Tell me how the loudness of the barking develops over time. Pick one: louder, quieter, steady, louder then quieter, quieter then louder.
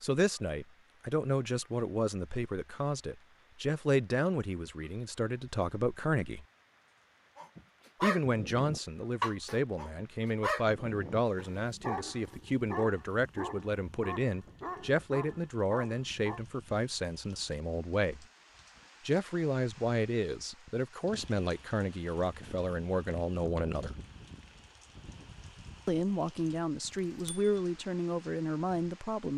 quieter.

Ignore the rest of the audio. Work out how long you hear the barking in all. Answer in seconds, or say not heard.
9 s.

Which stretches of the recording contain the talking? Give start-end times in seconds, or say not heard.
0.0-6.5, 8.0-18.2, 19.1-24.0, 25.9-29.3.